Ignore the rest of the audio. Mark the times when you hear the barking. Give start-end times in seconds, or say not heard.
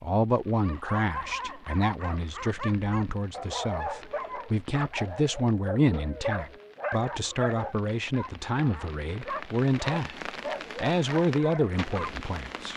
0.6-12.3.